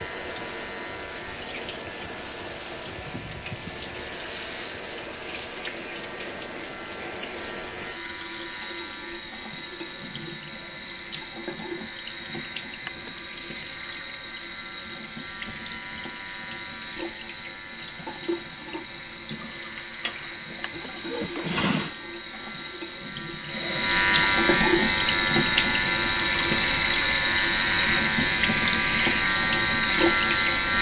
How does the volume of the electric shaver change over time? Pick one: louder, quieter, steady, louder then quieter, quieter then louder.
louder.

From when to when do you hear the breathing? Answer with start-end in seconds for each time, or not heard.
not heard.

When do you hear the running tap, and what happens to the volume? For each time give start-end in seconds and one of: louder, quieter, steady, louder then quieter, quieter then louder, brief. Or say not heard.
0.0-30.7 louder.